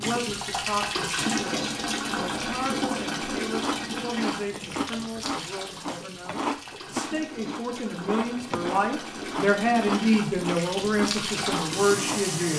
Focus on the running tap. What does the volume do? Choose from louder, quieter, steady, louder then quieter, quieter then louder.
quieter then louder.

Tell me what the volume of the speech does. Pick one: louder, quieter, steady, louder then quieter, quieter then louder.
louder.